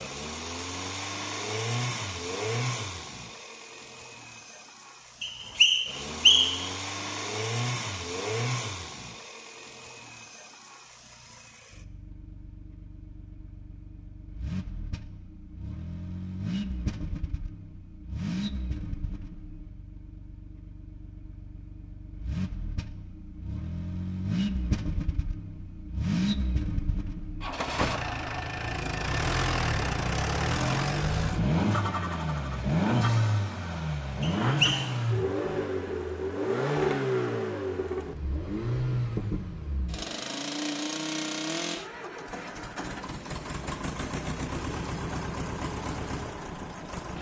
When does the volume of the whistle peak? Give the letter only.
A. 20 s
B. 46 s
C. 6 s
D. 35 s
C.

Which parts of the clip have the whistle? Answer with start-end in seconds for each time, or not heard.
5.2-6.7, 34.2-34.8.